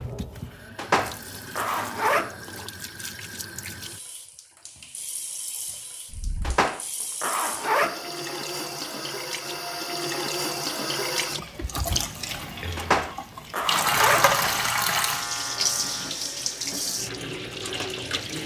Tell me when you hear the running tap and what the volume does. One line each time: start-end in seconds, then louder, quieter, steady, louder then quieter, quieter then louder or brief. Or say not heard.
0.0-18.4 louder.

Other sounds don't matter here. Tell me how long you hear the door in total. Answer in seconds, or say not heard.
2 s.